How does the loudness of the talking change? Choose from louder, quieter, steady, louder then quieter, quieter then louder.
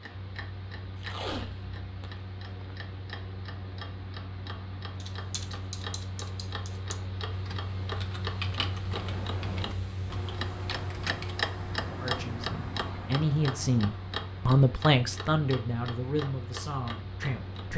louder then quieter.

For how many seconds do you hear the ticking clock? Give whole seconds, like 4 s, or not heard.
18 s.